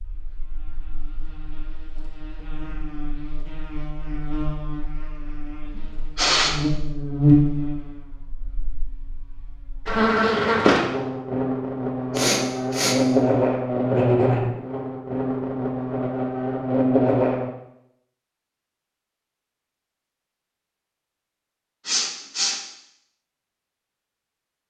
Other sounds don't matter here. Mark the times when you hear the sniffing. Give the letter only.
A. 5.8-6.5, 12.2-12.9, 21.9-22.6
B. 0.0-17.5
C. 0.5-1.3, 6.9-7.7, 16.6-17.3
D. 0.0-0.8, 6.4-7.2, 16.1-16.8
A.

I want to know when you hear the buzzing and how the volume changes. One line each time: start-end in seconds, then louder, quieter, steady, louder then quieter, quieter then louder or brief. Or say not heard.
0.0-17.5 louder.